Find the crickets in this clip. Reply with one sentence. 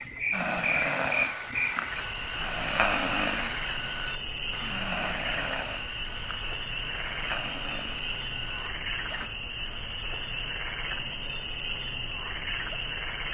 You can hear the crickets from 0.0 to 13.2 s.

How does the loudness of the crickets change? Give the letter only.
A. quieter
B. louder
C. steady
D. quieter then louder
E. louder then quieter
C.